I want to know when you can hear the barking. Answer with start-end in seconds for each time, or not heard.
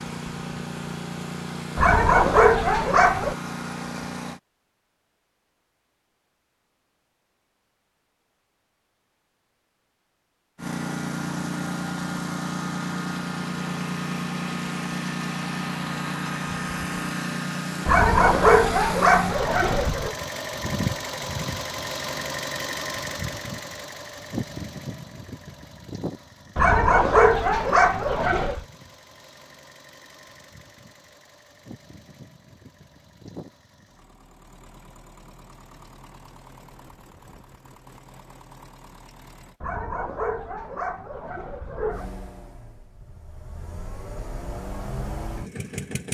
1.8-3.4, 17.9-20.1, 26.6-28.6, 39.6-42.0.